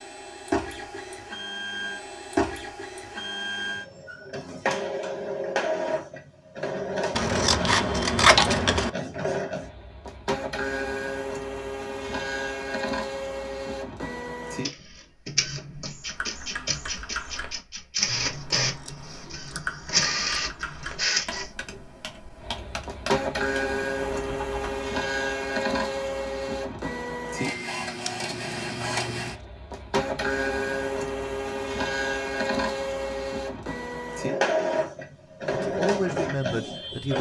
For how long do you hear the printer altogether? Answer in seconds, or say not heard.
37 s.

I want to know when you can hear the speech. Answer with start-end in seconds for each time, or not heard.
35.5-37.1.